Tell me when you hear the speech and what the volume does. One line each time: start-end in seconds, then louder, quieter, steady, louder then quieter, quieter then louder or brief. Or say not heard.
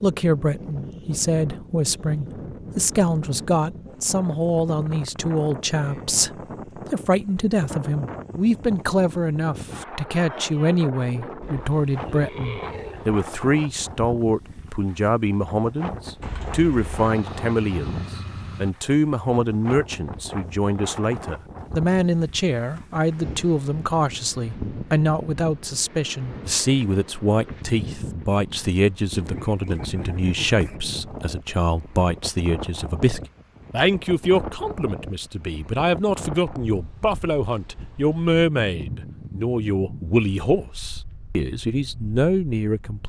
0.0-43.0 steady.